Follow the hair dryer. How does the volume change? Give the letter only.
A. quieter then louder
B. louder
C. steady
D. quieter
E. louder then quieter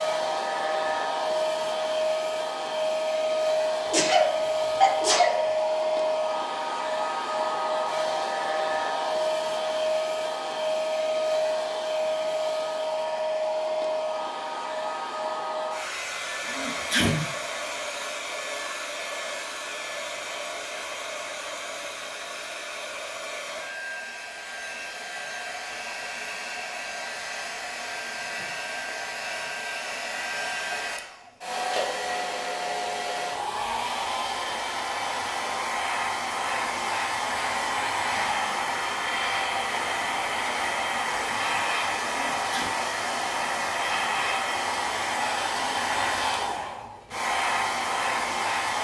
A.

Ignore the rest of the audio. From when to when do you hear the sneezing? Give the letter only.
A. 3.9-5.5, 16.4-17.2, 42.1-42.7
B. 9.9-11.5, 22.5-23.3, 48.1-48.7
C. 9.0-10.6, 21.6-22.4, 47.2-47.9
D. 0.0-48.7
A.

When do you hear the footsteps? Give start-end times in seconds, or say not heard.
not heard.